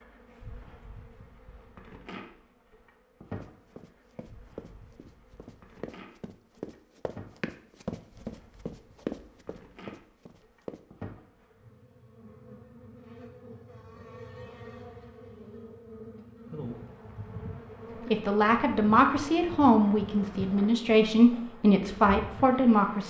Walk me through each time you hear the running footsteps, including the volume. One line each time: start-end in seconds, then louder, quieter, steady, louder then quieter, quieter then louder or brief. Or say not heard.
3.3-10.8 louder then quieter.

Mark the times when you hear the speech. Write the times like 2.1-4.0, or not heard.
18.1-23.0.